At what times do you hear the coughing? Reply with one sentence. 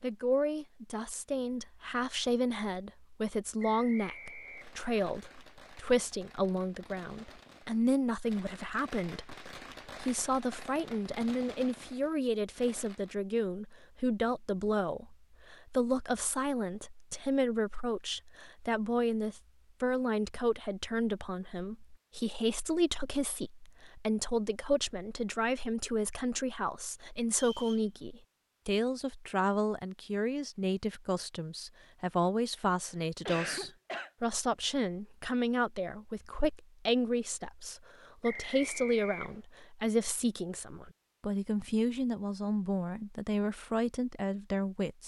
The coughing can be heard from 32.9 to 34.1 s.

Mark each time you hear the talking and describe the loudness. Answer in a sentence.
You can hear the talking from 0.0 to 45.0 s, at a steady volume.